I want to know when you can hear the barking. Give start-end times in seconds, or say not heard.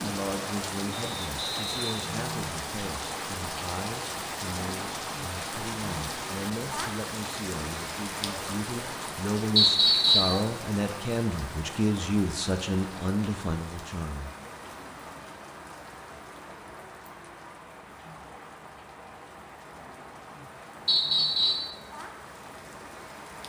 not heard.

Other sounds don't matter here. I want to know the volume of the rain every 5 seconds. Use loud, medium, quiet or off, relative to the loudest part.
loud, loud, medium, medium, medium.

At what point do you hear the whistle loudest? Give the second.
10 s.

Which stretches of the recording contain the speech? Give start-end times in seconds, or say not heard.
0.0-14.3.